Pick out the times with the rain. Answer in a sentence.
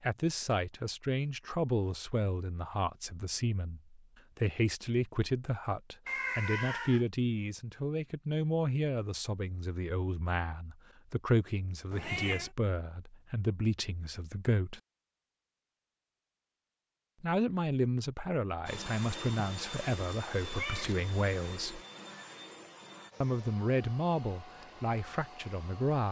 You can't hear the rain here.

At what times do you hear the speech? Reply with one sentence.
You can hear the speech from 0.0 to 14.8 s, from 17.2 to 21.8 s and from 23.2 to 26.0 s.